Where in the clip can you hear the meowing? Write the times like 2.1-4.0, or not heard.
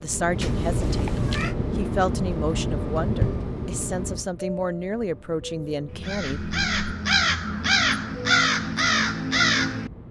0.4-1.6.